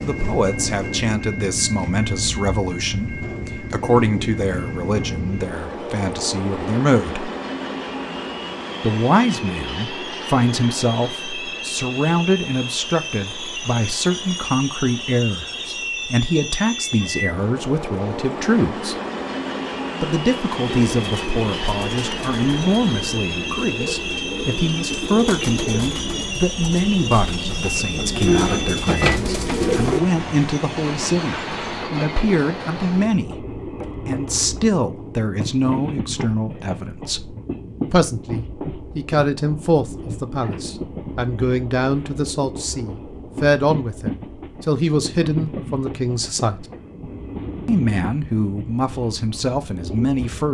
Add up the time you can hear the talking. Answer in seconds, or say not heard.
46 s.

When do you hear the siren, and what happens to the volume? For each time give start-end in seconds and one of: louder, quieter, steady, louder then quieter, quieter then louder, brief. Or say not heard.
not heard.